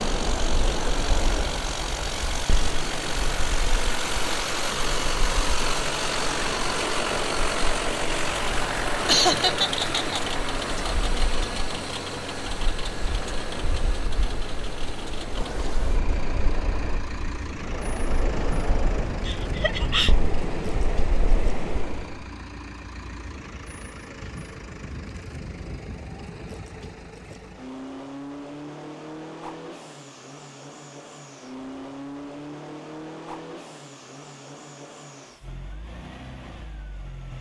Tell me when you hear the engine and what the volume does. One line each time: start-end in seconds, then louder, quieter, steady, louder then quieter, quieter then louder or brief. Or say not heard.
0.0-37.3 quieter.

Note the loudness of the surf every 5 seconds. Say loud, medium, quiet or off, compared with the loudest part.
loud, loud, medium, loud, loud, off, off, off.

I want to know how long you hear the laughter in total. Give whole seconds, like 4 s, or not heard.
2 s.